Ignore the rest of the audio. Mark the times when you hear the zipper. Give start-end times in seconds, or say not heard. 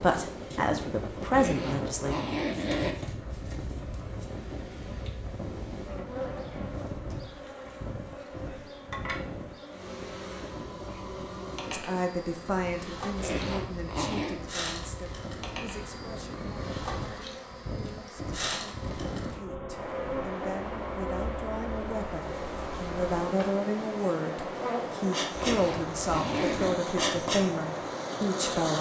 1.3-3.0, 13.2-14.4, 25.4-26.8.